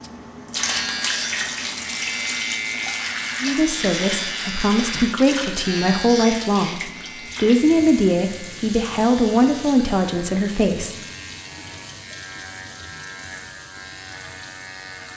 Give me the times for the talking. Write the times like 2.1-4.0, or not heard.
3.4-10.9.